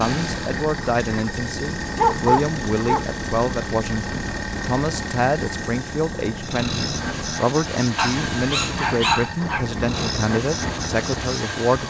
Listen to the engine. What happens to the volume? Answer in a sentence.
The loudness of the engine stays about the same.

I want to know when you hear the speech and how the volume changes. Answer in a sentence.
You can hear the speech from 0.0 to 11.8 s, at a steady volume.